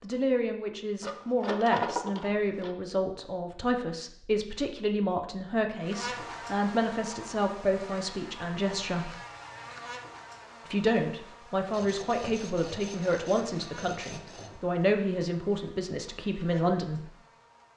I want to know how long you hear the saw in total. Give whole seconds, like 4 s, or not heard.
5 s.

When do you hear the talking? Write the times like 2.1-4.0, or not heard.
0.0-9.1, 10.7-17.1.